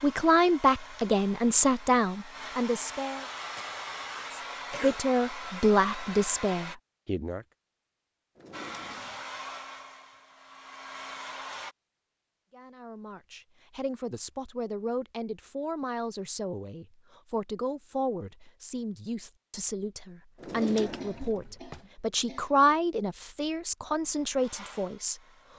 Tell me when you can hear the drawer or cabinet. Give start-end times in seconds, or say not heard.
8.3-9.3, 20.4-21.9.